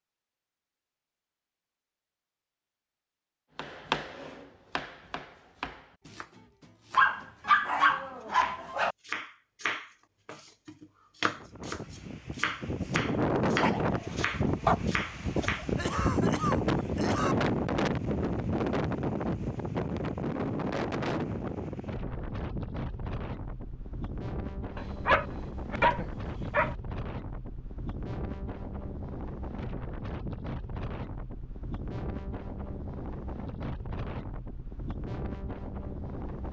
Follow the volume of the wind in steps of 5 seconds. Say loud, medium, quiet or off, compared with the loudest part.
off, off, loud, loud, medium, medium, medium, medium.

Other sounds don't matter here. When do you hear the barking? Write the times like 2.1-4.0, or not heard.
7.0-8.9, 13.6-14.8, 24.8-26.8.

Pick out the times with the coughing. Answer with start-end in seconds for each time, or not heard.
15.3-17.4.